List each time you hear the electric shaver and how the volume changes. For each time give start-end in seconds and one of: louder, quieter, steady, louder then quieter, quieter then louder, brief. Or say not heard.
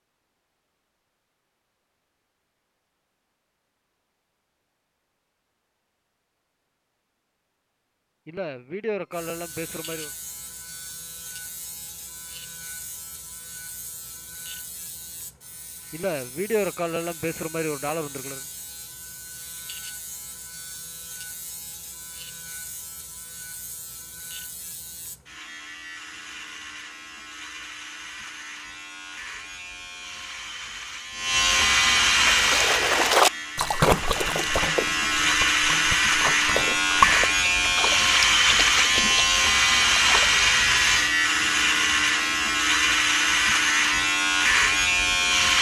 9.1-45.5 louder.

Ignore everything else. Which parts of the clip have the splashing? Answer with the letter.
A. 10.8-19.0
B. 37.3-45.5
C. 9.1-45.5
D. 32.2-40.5
D.